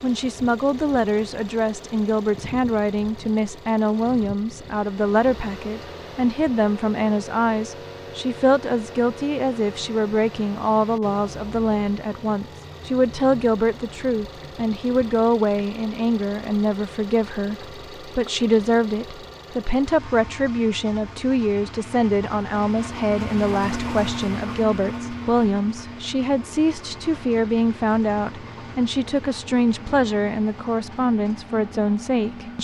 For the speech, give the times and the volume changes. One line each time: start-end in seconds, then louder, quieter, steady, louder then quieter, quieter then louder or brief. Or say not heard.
0.0-32.5 steady.